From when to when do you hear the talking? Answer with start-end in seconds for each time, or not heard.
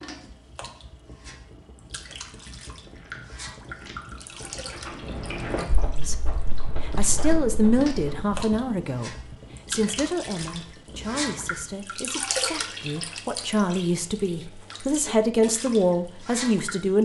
6.0-17.0.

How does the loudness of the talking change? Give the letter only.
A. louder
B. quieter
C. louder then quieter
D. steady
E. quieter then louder
E.